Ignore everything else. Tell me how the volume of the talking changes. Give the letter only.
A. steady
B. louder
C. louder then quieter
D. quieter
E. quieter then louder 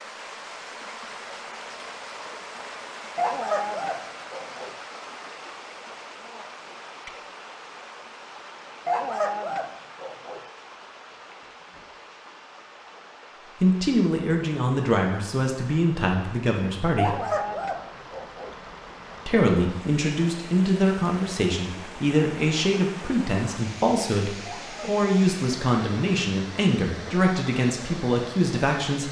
A.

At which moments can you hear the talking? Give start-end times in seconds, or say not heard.
13.6-17.2, 19.2-29.0.